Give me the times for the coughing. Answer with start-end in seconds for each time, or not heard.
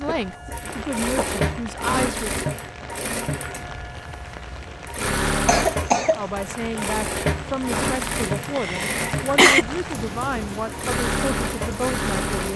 0.1-1.4, 5.5-6.2, 8.6-9.7.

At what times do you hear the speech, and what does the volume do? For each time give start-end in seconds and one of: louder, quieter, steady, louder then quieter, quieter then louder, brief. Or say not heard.
0.0-2.3 brief
6.2-12.5 steady.